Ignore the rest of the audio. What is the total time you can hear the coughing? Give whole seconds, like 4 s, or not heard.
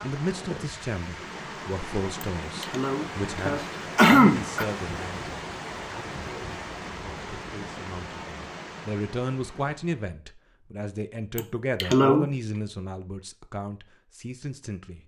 3 s.